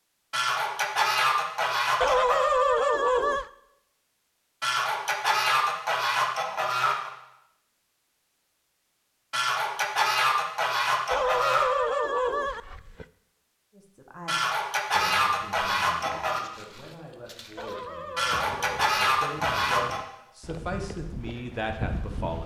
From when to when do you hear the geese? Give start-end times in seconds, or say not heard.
0.3-2.5, 4.6-7.1, 9.3-11.8, 14.2-16.4, 18.1-20.0.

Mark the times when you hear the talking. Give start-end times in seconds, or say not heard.
13.8-22.4.